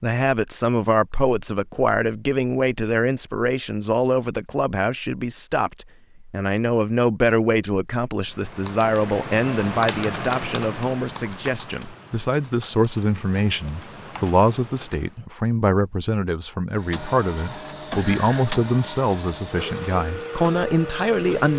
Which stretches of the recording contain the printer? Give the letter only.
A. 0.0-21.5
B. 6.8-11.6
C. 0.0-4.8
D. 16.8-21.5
D.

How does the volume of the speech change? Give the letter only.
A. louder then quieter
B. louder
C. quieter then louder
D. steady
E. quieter
D.